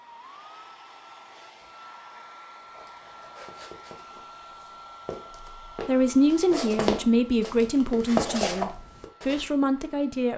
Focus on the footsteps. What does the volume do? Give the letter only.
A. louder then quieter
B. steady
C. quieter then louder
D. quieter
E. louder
E.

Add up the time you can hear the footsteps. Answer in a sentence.
You can hear the footsteps for 7 seconds altogether.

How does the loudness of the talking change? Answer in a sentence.
The volume of the talking goes down, then up.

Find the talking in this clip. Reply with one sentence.
You can hear the talking from 5.4 to 10.3 s.